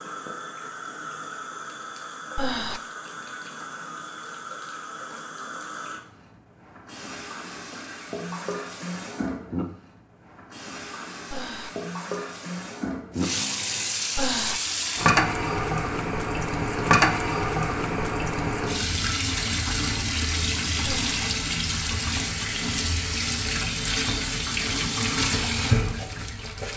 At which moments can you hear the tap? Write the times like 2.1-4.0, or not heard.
0.0-26.7.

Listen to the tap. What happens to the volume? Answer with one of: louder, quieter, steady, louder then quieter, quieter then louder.
louder.